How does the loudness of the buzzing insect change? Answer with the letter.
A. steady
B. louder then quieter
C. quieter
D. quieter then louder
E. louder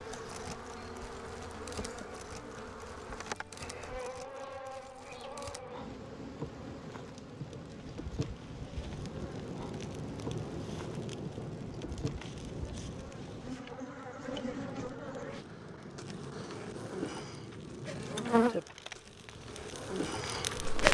E.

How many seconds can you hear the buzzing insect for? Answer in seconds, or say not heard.
21 s.